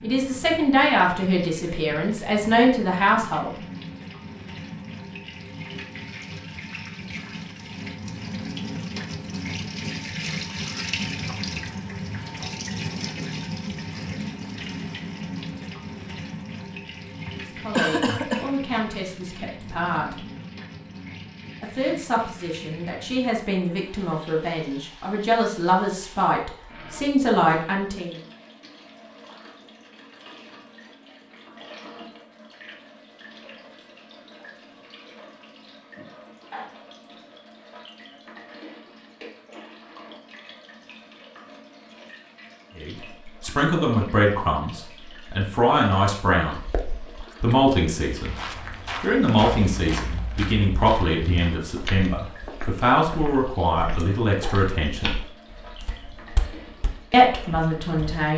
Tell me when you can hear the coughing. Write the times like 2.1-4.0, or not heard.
17.2-18.4, 46.5-47.5.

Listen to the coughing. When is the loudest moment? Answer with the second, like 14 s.
18 s.